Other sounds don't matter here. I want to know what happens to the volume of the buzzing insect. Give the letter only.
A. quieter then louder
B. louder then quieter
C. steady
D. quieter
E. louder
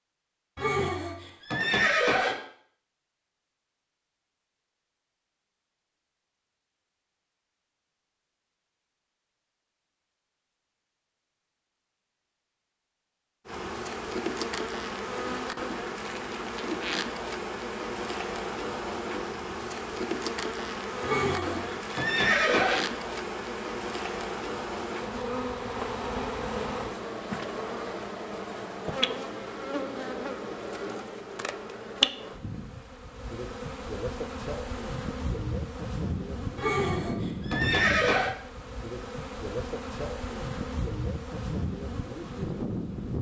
C.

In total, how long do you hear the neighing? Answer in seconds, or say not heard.
5 s.